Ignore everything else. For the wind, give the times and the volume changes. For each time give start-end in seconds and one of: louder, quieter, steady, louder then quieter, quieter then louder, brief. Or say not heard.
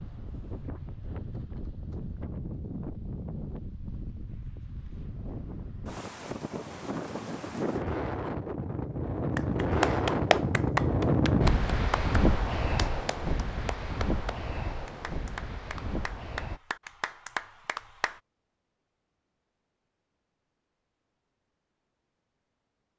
0.0-16.6 louder then quieter.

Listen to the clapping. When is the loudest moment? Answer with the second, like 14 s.
10 s.